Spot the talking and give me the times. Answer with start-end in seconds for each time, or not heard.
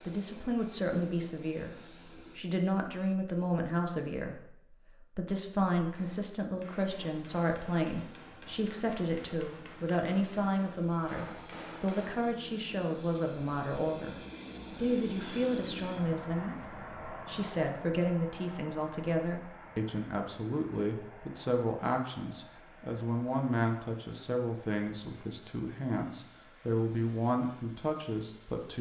0.0-28.7.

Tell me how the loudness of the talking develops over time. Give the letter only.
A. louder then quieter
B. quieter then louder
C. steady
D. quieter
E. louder
C.